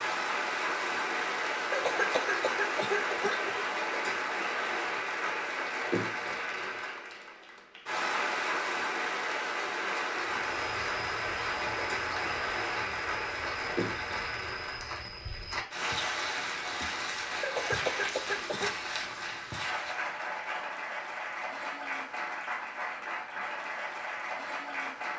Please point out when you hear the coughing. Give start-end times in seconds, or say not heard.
1.7-3.6, 17.4-18.8.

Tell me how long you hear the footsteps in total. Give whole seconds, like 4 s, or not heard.
10 s.